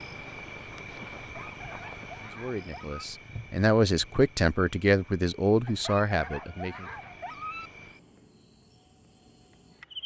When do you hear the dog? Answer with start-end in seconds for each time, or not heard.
1.1-3.0, 5.7-7.7.